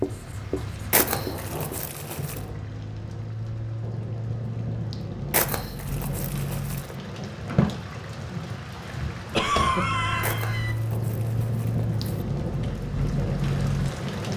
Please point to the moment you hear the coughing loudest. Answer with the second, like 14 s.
10 s.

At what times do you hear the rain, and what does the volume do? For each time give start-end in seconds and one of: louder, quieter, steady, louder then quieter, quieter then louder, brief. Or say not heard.
0.0-14.3 louder.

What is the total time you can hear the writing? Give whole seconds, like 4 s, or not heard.
2 s.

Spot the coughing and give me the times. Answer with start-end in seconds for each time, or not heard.
9.3-10.8.